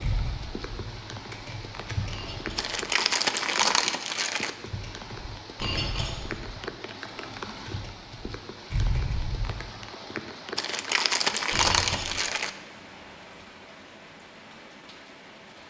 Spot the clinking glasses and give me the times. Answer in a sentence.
The clinking glasses can be heard from 2.1 to 2.8 s, from 5.5 to 6.2 s and from 11.5 to 12.2 s.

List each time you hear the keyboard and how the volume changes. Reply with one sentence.
The keyboard can be heard briefly from 0.0 to 2.9 s; and from 4.7 to 9.7 s, getting quieter then louder.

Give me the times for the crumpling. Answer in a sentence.
You can hear the crumpling from 2.5 to 4.5 s and from 10.6 to 12.5 s.